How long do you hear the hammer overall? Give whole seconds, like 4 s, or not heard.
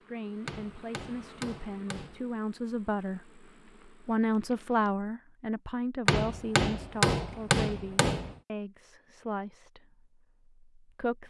4 s.